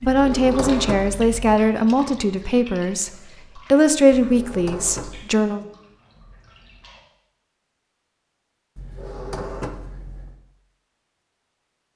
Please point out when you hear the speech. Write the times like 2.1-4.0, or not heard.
0.0-5.6.